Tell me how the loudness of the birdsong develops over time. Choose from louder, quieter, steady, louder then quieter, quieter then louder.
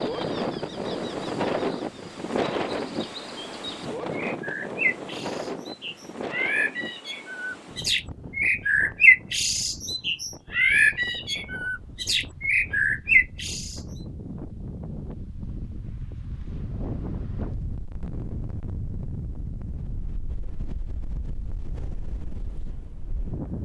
louder.